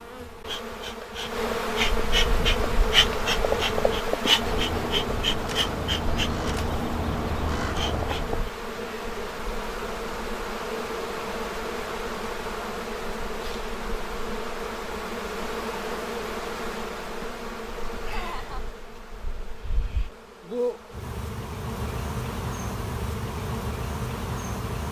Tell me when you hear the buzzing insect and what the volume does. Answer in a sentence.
The buzzing insect can be heard from 0.0 to 24.8 s, getting quieter.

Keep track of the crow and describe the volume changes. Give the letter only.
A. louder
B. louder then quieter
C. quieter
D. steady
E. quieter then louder
A.